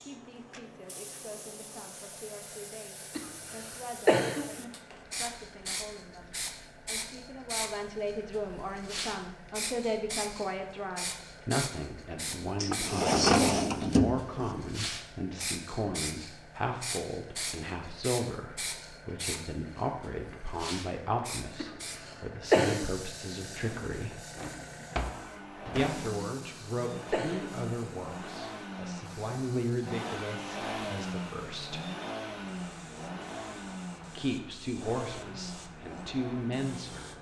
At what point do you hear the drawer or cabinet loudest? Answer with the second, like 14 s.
13 s.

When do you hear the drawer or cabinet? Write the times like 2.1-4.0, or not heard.
12.6-14.5, 23.6-26.1.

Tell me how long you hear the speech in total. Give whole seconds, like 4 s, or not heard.
33 s.